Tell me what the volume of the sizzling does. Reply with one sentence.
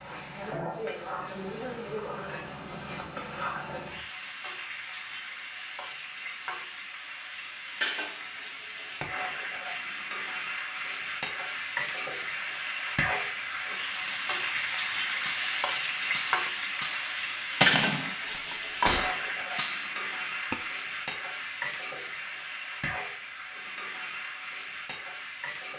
The loudness of the sizzling goes up, then down.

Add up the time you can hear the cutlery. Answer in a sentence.
The cutlery can be heard for 6 seconds in total.